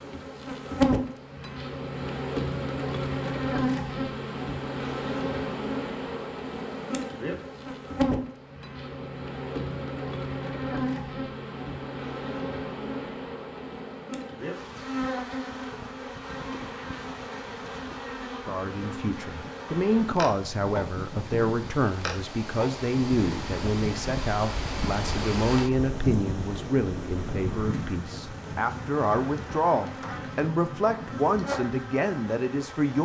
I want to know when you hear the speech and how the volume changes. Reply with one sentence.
You can hear the speech from 18.4 to 33.0 s, at a steady volume.